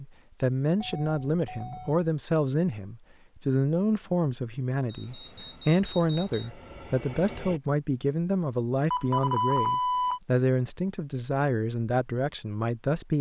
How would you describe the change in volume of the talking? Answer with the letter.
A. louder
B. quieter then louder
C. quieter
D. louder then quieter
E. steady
E.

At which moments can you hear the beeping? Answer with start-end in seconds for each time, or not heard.
0.8-2.1, 4.8-6.5, 8.9-10.2.